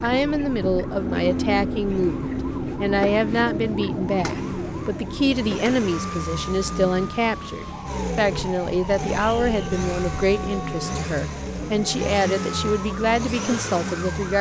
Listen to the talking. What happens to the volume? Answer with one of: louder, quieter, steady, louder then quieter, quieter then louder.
steady.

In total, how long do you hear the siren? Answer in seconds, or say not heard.
14 s.